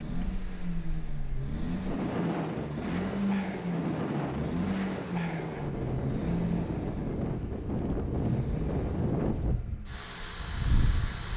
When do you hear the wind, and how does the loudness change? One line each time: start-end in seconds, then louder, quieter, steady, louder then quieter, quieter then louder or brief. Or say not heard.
0.0-11.3 steady.